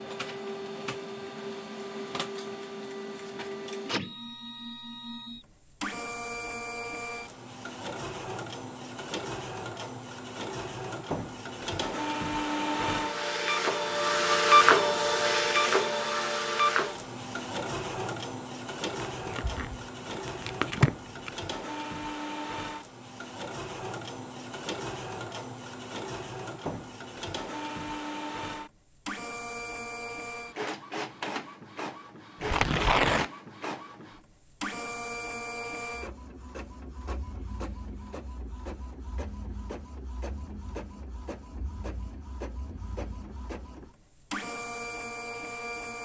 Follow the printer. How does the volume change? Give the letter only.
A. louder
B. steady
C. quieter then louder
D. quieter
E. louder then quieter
E.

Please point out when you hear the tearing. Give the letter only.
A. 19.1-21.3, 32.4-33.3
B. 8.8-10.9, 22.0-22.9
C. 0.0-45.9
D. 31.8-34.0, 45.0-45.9
A.